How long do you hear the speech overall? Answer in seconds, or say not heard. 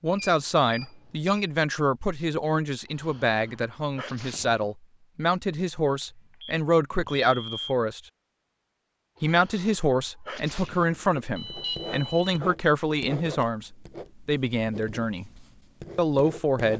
15 s.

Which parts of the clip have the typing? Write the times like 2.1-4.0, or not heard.
not heard.